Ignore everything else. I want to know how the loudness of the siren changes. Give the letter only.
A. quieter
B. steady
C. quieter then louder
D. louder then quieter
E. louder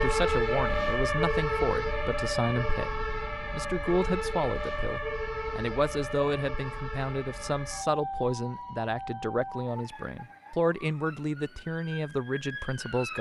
A.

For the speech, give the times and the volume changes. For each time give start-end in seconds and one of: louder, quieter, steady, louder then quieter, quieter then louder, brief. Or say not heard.
0.0-13.1 steady.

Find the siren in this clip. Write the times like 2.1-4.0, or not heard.
0.0-13.1.